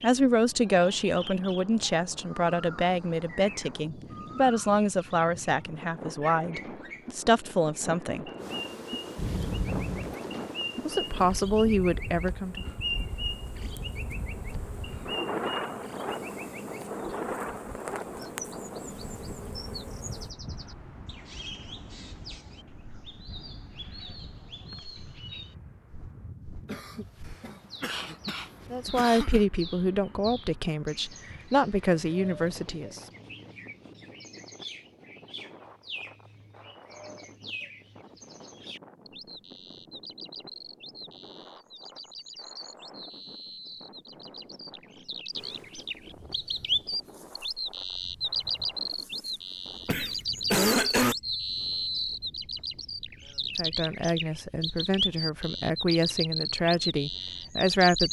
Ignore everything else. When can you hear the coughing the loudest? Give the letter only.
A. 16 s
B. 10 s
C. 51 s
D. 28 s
C.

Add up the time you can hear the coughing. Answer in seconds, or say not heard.
5 s.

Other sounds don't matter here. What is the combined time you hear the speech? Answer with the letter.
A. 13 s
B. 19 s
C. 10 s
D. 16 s
B.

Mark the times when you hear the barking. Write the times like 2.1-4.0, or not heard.
not heard.